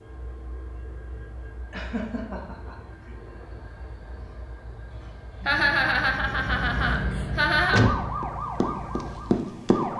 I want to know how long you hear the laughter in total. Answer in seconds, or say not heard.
4 s.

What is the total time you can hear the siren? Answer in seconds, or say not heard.
2 s.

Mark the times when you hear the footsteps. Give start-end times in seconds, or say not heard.
not heard.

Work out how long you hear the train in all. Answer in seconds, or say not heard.
10 s.